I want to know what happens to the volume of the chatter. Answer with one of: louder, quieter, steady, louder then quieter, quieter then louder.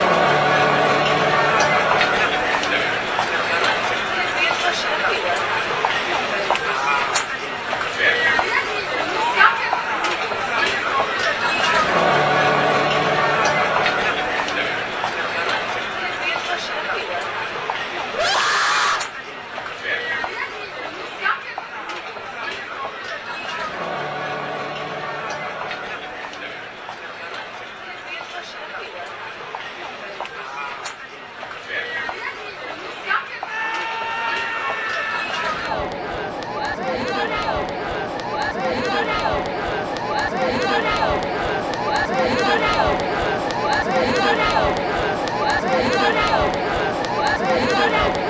quieter then louder.